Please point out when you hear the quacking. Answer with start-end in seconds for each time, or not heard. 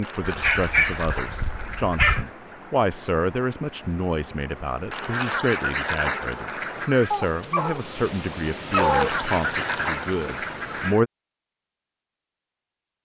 0.0-2.3, 4.9-7.2, 8.7-11.0.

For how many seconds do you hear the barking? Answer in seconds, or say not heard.
4 s.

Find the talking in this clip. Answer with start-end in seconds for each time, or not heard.
0.0-11.1.